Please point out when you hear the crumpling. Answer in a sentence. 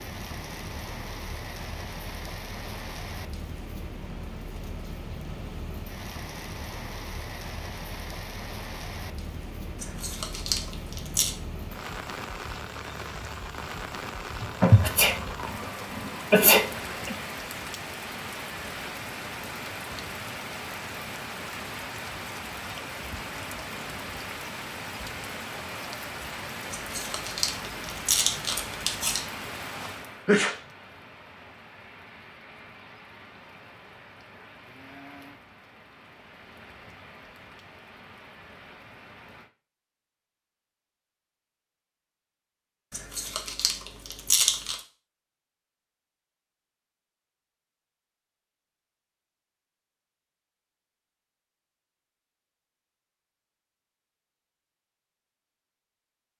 You can hear the crumpling from 9.8 to 11.3 s, from 26.7 to 29.2 s and from 42.9 to 44.8 s.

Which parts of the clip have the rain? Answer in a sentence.
The rain can be heard from 0.0 to 39.5 s.